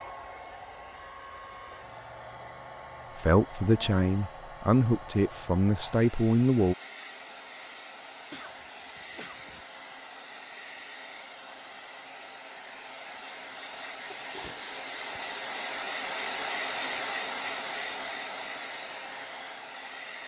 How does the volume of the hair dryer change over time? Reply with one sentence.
The loudness of the hair dryer goes up.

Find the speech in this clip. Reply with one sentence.
You can hear the speech from 3.1 to 6.8 s.